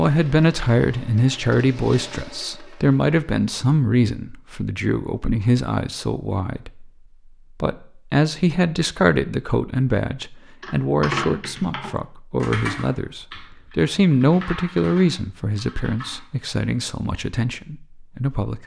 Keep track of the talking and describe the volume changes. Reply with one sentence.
The volume of the talking goes down.